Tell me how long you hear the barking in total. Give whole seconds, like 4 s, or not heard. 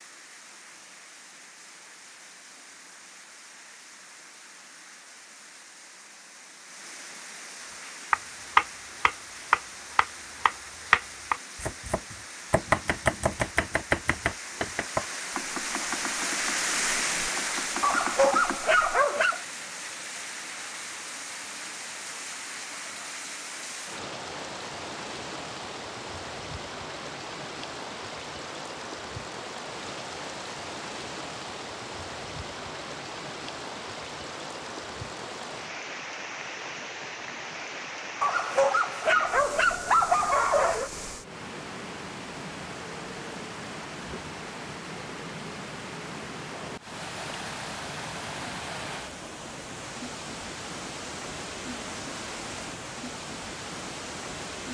4 s.